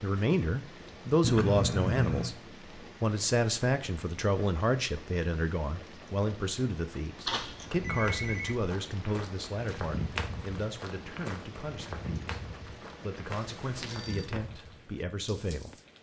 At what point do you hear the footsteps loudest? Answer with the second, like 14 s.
10 s.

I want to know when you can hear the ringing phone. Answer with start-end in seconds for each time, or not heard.
1.2-2.4, 7.2-8.6, 13.3-14.3.